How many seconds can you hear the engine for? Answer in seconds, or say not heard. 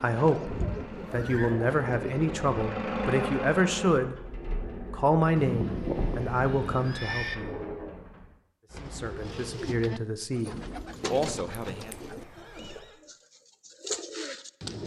8 s.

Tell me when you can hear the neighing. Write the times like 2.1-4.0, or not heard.
0.4-1.6, 5.3-7.3, 11.7-12.9.